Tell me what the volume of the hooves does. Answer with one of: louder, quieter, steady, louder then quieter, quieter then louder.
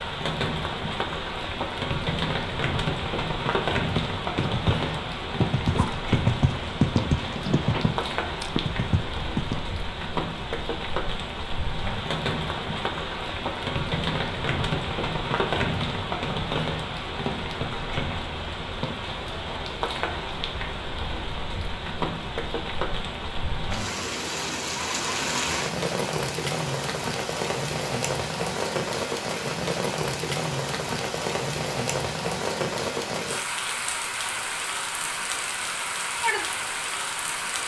louder then quieter.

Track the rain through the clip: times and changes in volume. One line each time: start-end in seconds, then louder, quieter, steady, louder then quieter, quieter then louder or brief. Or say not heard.
0.0-37.6 steady.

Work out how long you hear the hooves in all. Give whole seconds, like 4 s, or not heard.
6 s.